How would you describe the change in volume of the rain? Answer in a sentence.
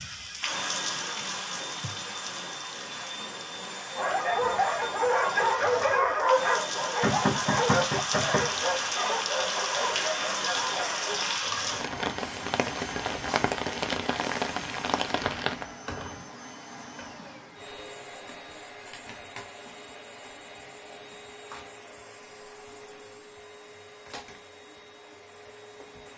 The volume of the rain goes down, then up.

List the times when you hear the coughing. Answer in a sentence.
You can't hear the coughing here.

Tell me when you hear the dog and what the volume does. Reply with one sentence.
You can hear the dog from 4.0 to 11.3 s, getting quieter.